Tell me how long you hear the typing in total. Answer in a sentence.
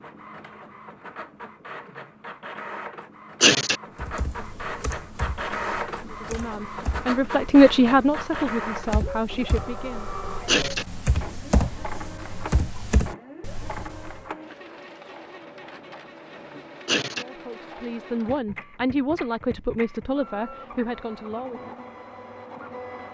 You can hear the typing for 10 seconds altogether.